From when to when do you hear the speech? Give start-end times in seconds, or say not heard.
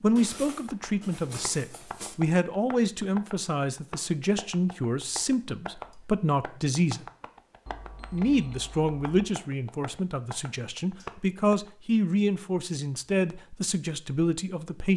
0.0-7.0, 8.1-14.9.